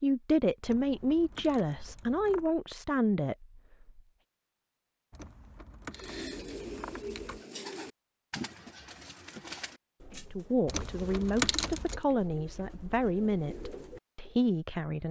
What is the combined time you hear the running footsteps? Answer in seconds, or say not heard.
not heard.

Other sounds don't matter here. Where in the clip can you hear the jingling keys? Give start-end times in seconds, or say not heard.
0.6-2.5, 5.1-7.4, 10.7-12.0.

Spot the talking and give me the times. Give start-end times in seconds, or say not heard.
0.0-4.0, 10.3-15.0.